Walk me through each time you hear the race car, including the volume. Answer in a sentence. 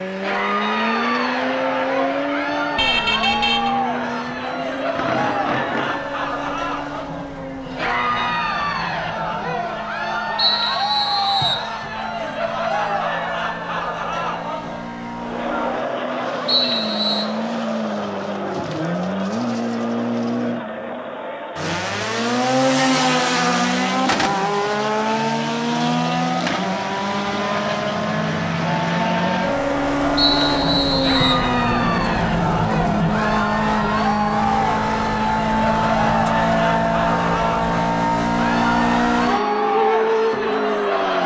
The race car can be heard from 0.0 to 41.2 s, getting quieter then louder.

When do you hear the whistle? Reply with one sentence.
You can hear the whistle from 10.3 to 11.7 s, from 16.4 to 17.3 s and from 30.1 to 31.4 s.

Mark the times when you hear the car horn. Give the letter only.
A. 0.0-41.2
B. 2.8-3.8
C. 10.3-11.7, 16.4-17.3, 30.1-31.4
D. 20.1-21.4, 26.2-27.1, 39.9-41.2
B.